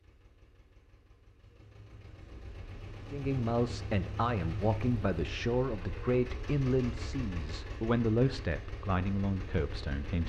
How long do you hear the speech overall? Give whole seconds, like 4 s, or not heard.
7 s.